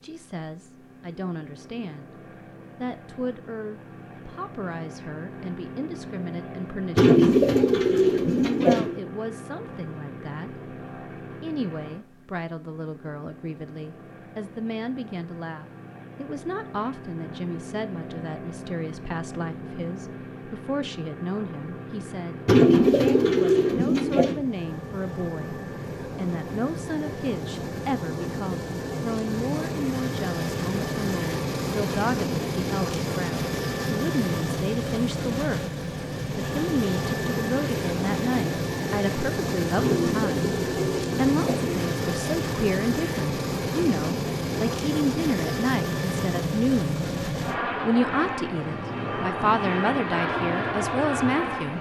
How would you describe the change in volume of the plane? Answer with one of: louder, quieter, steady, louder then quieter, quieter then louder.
louder.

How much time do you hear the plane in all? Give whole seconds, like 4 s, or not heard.
52 s.